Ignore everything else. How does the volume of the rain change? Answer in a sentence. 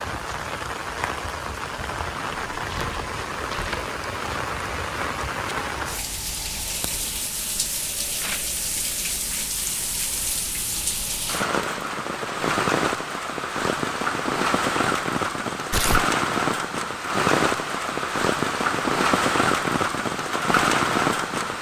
The volume of the rain goes up.